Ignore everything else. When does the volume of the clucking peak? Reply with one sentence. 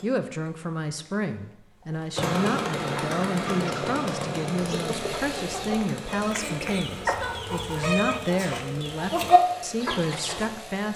The loudest moment of the clucking is at 9 seconds.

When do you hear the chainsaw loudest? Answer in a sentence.
The loudest moment of the chainsaw is at 3 seconds.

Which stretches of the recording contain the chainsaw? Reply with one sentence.
You can hear the chainsaw from 0.0 to 10.9 s.